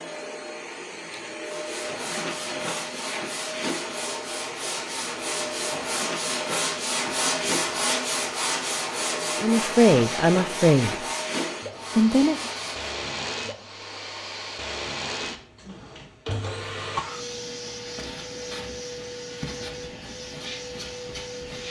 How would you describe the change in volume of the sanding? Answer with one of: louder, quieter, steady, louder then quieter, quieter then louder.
louder then quieter.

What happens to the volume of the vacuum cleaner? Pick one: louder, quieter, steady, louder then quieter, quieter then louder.
steady.